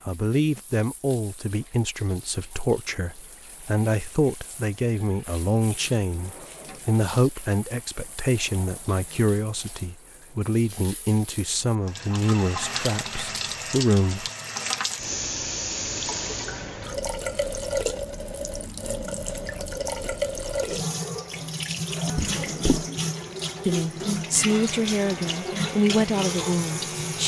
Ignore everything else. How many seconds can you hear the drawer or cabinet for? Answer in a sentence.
You can hear the drawer or cabinet for 2 seconds altogether.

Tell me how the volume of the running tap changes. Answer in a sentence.
The loudness of the running tap goes up.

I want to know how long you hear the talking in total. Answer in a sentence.
You can hear the talking for 18 seconds altogether.